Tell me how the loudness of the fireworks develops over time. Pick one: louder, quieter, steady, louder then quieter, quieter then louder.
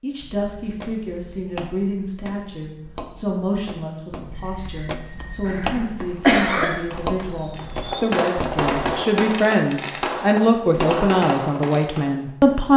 louder.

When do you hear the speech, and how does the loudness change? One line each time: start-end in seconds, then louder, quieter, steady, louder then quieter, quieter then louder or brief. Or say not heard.
0.0-12.7 louder.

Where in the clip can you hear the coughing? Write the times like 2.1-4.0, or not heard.
5.5-6.7.